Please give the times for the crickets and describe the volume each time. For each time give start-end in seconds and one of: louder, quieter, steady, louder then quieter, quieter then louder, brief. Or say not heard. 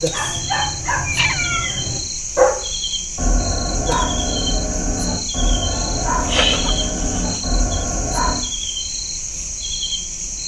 0.0-10.4 steady.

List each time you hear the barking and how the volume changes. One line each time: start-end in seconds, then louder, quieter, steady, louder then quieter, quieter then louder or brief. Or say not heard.
0.1-8.4 louder then quieter.